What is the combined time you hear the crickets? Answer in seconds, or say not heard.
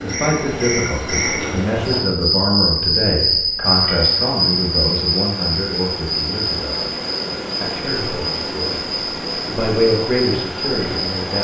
11 s.